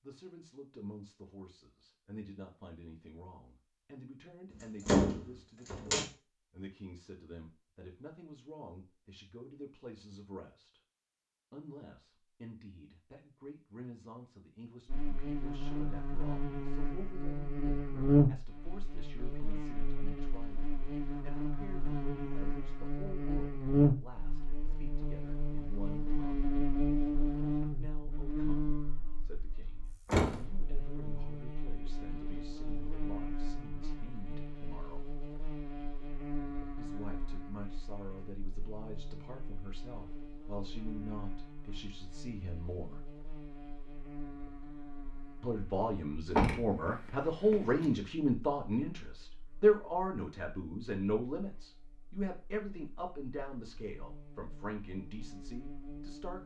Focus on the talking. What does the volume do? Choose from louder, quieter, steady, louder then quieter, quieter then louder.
louder.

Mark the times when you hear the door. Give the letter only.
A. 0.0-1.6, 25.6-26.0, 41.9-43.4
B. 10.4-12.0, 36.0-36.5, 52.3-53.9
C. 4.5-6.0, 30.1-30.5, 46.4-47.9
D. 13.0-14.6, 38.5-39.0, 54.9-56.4
C.